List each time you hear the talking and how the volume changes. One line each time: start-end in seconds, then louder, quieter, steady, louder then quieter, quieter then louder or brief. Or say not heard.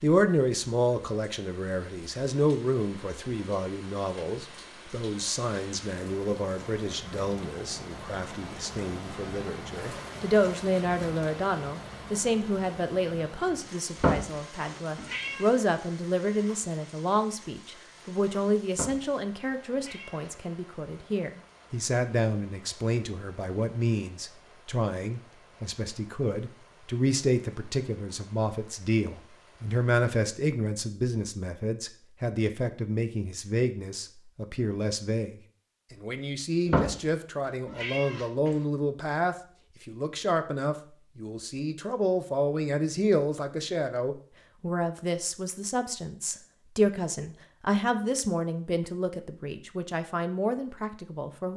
0.0-51.5 steady.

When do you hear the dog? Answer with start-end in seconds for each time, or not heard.
not heard.